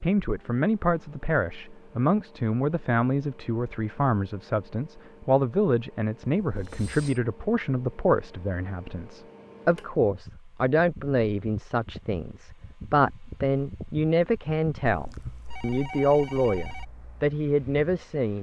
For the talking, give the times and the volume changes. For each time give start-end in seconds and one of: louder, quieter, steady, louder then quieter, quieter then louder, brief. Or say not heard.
0.0-18.3 steady.